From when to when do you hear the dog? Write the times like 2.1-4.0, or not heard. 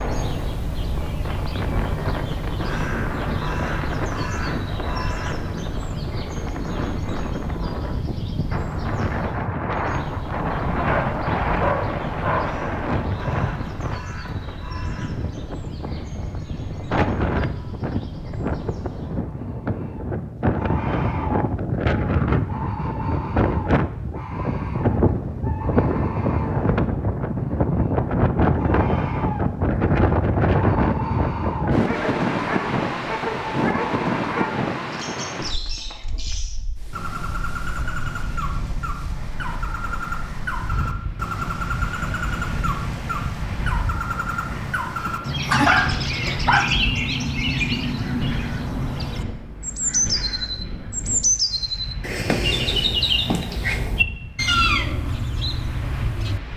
10.7-12.4, 31.8-34.5, 44.5-46.7.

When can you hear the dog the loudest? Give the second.
46 s.